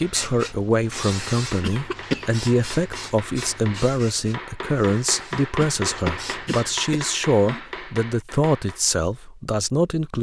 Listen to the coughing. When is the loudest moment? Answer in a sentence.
The loudest moment of the coughing is at 2 seconds.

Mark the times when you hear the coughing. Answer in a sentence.
The coughing can be heard from 1.6 to 2.2 s and from 5.5 to 7.6 s.